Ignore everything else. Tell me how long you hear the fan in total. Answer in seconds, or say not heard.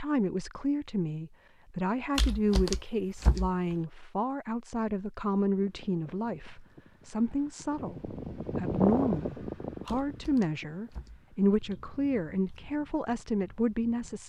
9 s.